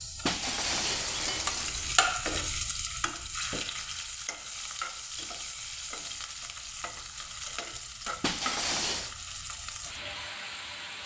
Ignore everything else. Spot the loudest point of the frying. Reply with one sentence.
The loudest moment of the frying is at 2 seconds.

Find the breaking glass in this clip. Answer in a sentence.
You can hear the breaking glass from 0.2 to 1.9 s and from 8.2 to 9.2 s.